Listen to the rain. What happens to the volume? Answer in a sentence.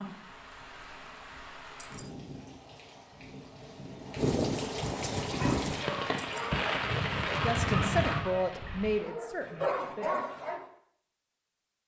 The loudness of the rain goes up.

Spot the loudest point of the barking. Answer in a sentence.
The loudest moment of the barking is at 10 seconds.